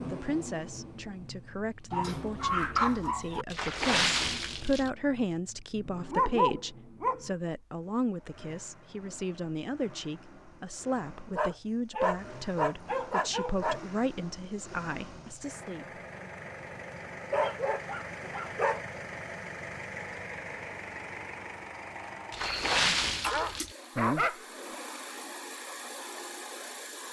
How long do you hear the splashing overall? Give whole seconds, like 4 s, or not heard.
3 s.